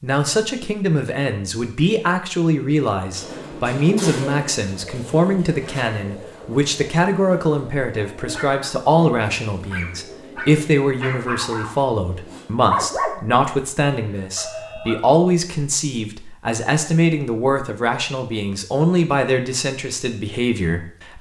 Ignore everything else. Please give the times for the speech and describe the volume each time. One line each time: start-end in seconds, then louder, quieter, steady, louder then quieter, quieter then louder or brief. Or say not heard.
0.0-21.1 steady.